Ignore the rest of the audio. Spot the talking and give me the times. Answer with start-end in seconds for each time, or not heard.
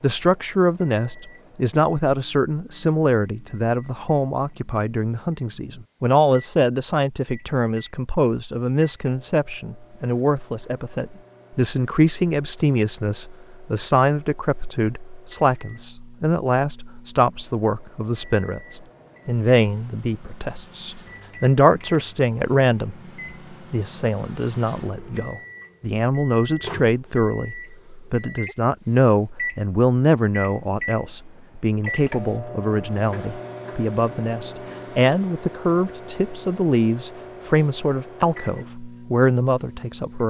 0.0-22.9, 23.7-40.2.